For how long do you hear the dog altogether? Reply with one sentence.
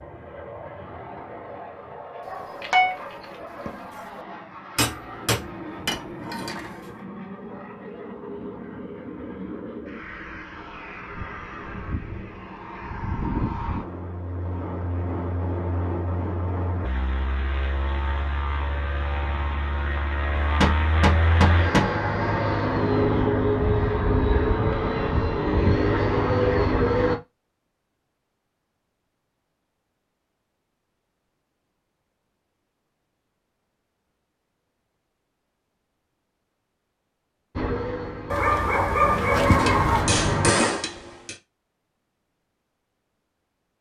The dog can be heard for 4 seconds in total.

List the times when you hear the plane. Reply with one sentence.
You can hear the plane from 0.0 to 27.2 s and from 37.5 to 40.5 s.